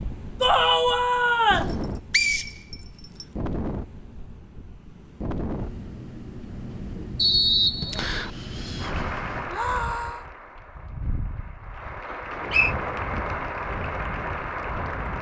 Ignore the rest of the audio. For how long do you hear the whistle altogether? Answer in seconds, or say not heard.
3 s.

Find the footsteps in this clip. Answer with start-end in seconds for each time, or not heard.
not heard.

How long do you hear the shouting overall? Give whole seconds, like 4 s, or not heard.
2 s.